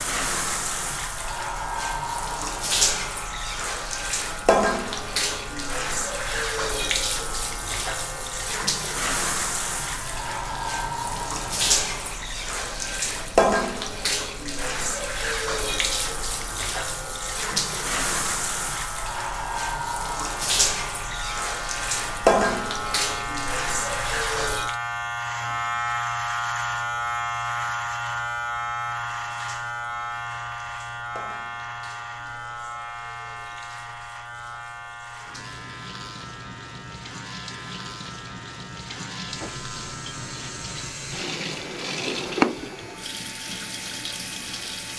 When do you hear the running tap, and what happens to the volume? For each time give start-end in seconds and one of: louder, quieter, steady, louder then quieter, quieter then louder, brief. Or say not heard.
0.0-24.8 steady
28.9-44.9 louder.